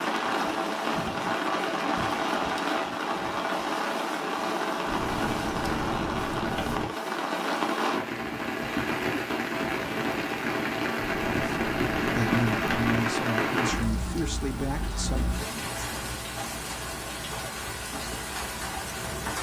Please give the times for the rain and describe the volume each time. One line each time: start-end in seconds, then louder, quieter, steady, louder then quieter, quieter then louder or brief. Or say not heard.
0.0-19.3 quieter.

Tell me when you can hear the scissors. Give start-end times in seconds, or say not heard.
4.8-6.8, 10.9-12.9.